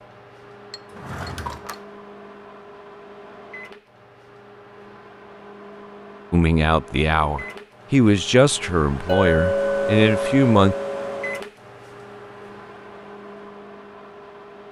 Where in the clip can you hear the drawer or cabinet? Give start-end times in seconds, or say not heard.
0.9-1.9.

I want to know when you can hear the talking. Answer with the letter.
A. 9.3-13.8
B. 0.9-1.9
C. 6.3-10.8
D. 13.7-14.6
C.